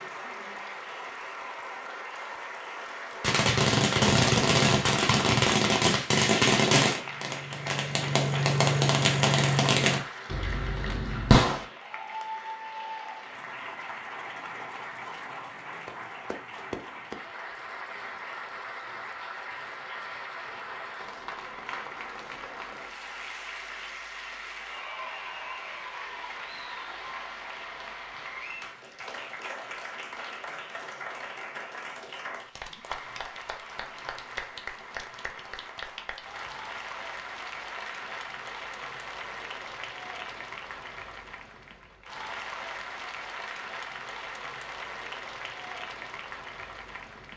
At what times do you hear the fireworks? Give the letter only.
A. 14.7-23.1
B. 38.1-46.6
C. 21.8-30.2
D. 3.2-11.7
D.